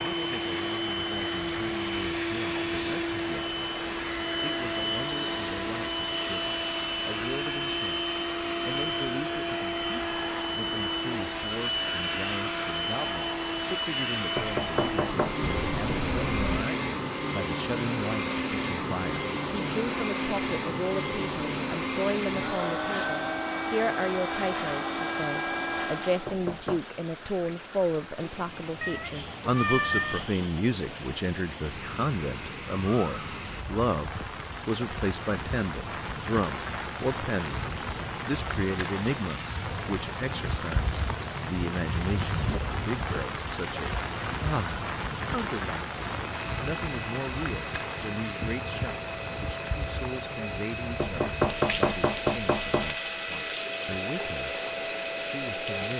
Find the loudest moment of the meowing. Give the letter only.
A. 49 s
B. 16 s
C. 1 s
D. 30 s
D.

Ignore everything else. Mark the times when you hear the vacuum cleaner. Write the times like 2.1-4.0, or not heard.
0.0-26.4, 46.1-55.9.